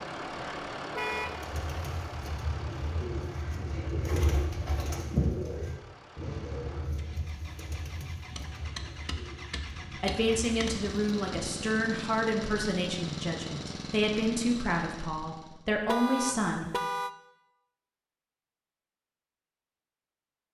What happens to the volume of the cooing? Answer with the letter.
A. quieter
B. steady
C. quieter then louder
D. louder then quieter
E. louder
D.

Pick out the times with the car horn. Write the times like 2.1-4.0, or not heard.
0.9-1.4, 15.8-17.1.